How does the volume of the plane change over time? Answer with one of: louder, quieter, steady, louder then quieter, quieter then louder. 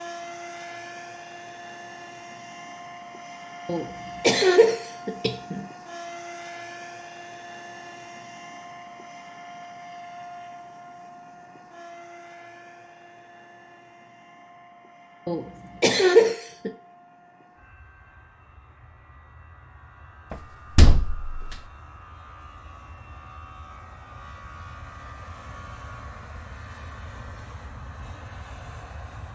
quieter then louder.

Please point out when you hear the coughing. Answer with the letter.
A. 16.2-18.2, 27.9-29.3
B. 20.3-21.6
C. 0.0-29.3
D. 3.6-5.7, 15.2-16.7
D.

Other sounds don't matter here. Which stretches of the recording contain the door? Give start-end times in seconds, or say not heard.
20.3-21.6.